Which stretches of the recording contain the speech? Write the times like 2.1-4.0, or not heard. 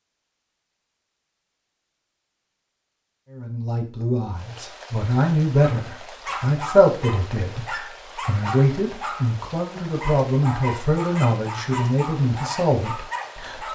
3.3-13.7.